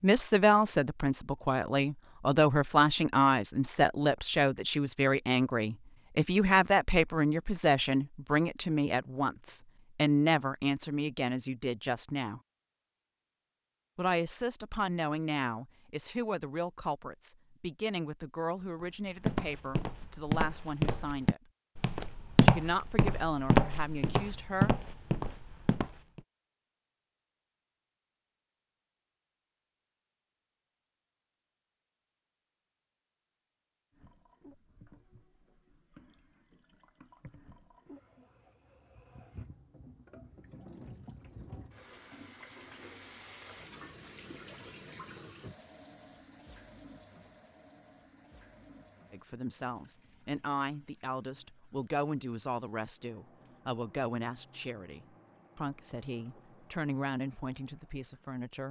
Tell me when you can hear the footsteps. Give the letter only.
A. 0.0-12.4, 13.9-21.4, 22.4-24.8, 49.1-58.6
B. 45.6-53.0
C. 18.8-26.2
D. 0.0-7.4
C.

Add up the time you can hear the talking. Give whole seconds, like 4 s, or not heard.
32 s.